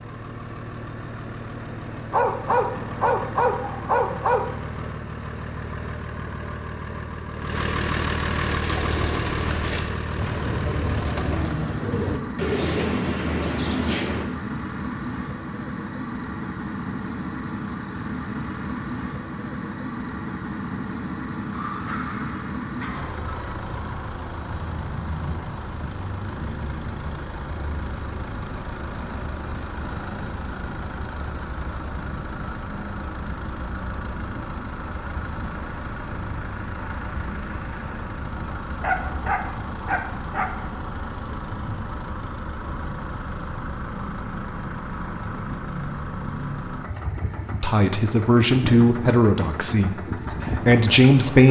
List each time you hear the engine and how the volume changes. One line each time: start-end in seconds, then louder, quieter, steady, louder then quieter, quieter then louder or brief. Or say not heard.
0.0-51.4 steady.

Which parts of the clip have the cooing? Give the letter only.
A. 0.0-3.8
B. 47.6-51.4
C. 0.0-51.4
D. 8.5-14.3
D.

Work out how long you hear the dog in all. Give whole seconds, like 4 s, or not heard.
6 s.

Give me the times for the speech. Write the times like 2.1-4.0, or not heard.
47.6-51.4.